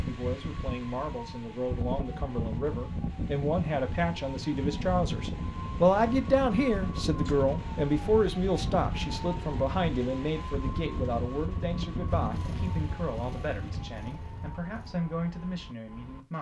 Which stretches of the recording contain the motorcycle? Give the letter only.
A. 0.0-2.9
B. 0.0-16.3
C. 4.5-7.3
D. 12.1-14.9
D.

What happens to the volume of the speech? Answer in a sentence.
The loudness of the speech goes up, then down.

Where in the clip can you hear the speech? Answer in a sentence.
You can hear the speech from 0.0 to 16.3 s.